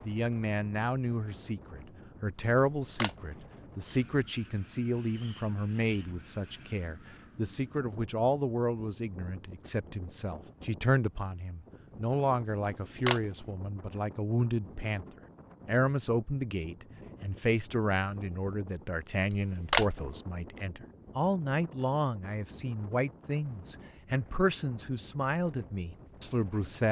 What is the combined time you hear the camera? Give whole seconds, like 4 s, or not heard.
2 s.